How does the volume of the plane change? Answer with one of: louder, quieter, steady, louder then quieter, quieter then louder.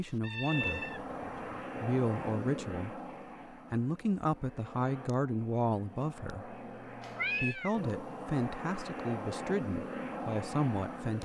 quieter then louder.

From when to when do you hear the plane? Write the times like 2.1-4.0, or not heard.
0.0-11.2.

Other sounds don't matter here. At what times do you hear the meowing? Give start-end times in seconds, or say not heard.
0.2-1.6, 7.0-7.8.